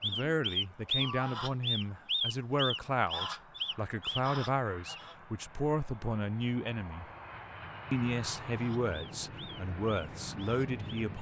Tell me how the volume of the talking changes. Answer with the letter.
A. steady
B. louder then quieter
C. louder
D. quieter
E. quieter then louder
A.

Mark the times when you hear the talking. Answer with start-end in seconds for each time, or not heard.
0.0-7.0, 7.9-11.1.